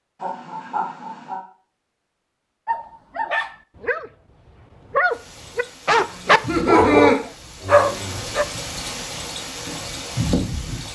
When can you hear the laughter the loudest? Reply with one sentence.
The volume of the laughter peaks at 7 seconds.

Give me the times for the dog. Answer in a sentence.
You can hear the dog from 2.6 to 8.4 s.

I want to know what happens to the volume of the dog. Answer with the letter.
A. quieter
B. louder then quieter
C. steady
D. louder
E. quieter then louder
D.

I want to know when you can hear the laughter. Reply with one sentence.
The laughter can be heard from 0.2 to 1.4 s and from 6.2 to 7.2 s.